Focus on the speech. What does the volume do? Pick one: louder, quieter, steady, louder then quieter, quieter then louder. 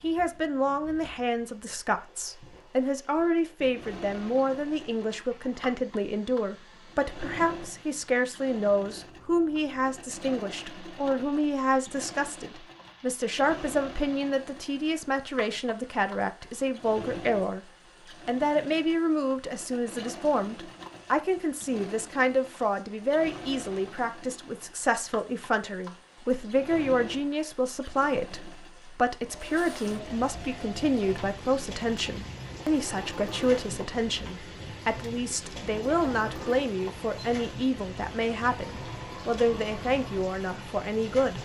steady.